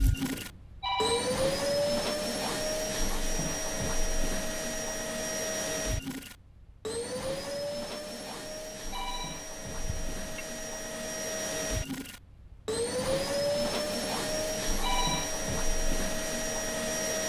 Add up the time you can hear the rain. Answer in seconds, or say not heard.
not heard.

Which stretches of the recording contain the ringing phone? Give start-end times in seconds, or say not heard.
0.3-1.4, 8.4-9.5, 14.3-15.3.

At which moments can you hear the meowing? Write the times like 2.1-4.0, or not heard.
9.8-10.4.